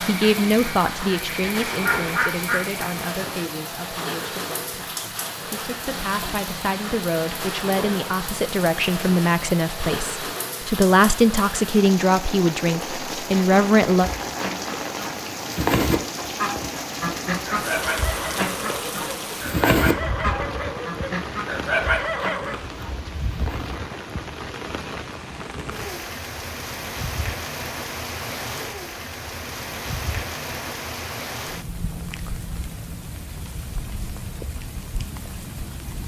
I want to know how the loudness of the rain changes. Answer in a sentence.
The loudness of the rain stays about the same.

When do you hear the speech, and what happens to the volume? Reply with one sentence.
You can hear the speech from 0.0 to 14.1 s, getting quieter then louder.